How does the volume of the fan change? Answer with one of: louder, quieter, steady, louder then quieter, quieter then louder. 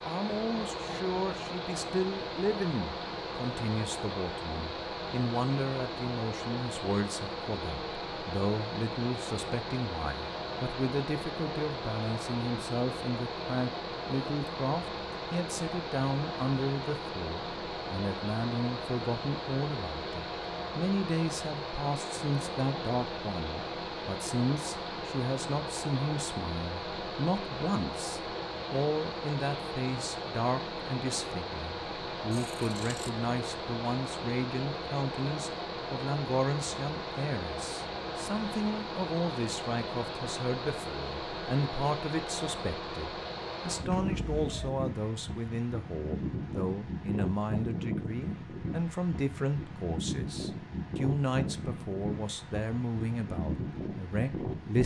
steady.